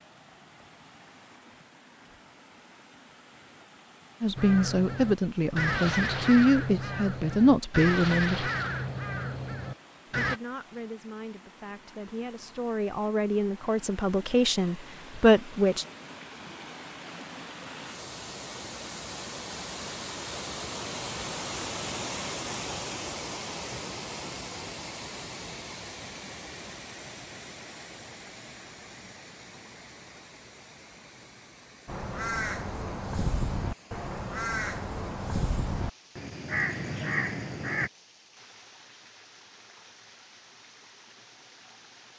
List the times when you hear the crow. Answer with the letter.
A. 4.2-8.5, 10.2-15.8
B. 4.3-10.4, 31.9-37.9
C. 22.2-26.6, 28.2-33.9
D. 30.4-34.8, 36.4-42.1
B.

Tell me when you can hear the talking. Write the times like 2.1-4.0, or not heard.
4.2-8.5, 10.2-15.8.